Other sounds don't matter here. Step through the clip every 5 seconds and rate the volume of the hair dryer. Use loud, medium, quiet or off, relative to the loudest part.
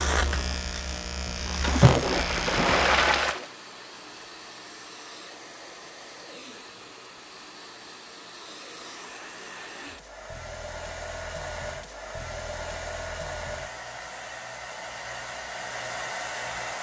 medium, medium, loud, loud.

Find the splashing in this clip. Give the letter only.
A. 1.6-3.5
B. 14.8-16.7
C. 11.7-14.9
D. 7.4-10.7
A.